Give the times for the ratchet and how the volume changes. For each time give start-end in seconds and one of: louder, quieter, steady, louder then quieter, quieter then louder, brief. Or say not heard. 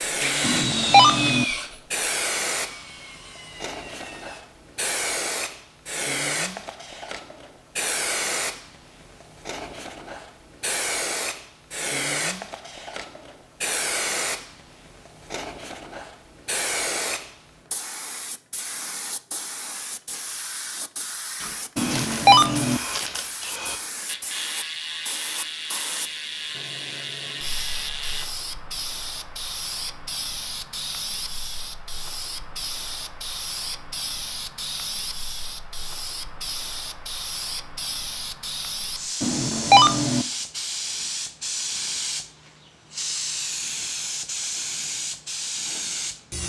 21.4-28.2 steady.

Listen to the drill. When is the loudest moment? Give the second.
1 s.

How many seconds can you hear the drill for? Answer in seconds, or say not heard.
4 s.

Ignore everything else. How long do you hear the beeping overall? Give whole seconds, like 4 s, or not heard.
3 s.